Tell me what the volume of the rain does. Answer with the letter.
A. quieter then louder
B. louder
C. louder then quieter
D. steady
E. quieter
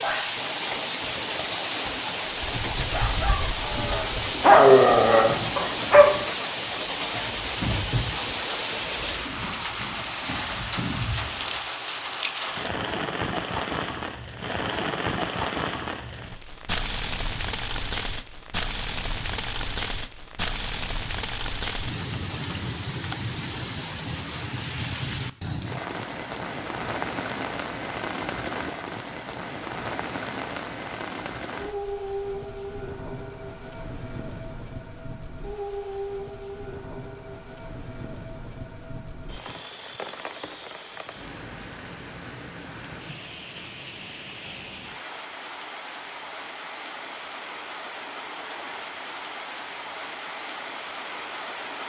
E.